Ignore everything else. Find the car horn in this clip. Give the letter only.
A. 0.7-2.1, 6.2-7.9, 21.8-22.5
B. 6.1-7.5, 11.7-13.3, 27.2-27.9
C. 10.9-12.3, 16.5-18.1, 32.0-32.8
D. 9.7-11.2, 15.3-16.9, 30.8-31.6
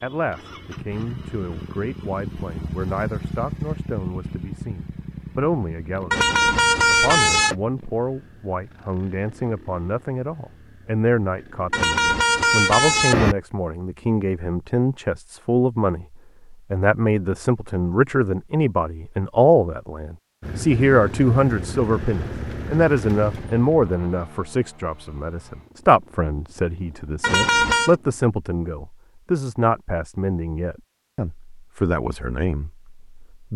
B.